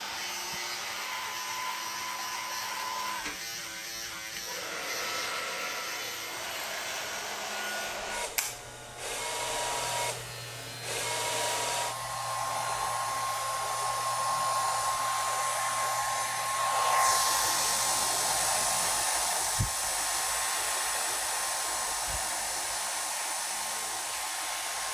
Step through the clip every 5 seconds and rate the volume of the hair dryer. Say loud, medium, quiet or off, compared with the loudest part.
medium, medium, loud, loud, medium.